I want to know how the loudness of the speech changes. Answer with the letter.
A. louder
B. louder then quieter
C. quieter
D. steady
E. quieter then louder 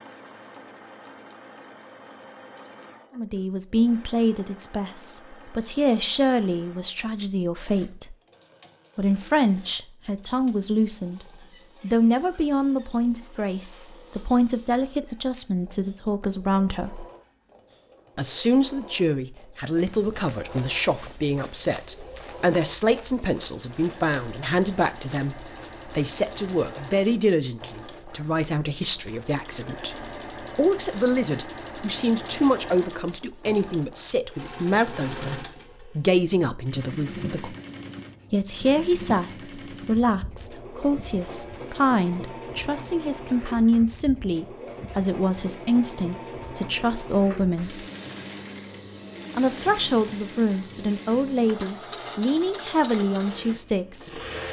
D.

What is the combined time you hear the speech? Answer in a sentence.
You can hear the speech for 47 seconds altogether.